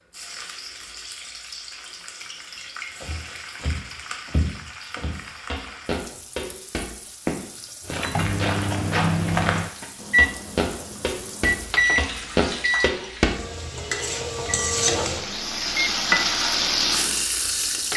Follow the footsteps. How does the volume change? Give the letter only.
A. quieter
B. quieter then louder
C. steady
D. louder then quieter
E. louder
E.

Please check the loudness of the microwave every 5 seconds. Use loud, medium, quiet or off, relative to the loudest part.
off, loud, loud, medium.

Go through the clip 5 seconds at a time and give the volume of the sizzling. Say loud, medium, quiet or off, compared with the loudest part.
quiet, quiet, medium, loud.